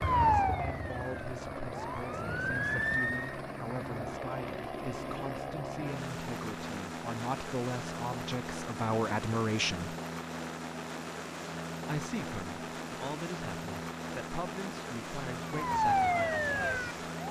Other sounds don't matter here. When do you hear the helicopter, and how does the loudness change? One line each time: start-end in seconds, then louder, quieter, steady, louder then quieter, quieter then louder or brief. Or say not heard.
0.0-17.2 steady.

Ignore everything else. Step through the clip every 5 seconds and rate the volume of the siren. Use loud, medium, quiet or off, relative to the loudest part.
loud, off, off, loud.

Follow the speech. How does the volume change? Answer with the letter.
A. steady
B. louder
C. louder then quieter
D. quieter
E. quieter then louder
C.